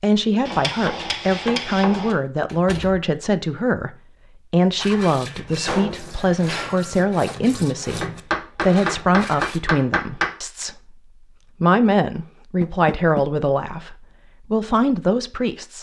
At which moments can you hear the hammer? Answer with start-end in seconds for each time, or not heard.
0.5-2.1, 8.0-10.3.